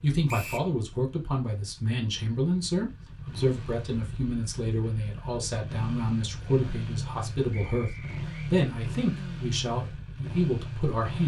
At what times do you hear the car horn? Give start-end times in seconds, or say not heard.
not heard.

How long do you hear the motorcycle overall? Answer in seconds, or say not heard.
11 s.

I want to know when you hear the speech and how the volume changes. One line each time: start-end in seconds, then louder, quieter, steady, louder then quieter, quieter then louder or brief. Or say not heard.
0.0-11.2 steady.